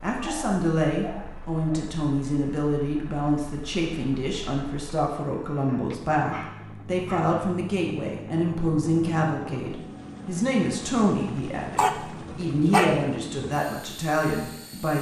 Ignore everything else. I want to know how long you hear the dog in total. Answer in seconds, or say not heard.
5 s.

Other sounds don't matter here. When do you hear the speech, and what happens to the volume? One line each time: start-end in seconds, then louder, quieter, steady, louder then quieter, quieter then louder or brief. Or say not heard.
0.0-14.9 steady.